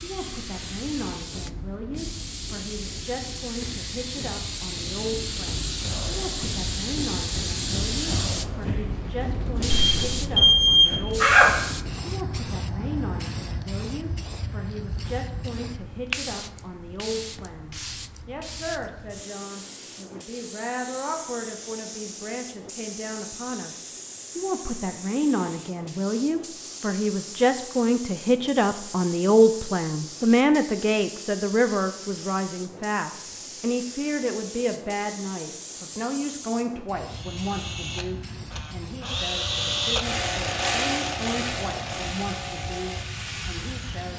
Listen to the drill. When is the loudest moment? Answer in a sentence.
The volume of the drill peaks at 40 seconds.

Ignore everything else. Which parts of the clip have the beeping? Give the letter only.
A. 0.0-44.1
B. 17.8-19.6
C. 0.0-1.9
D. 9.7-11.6
D.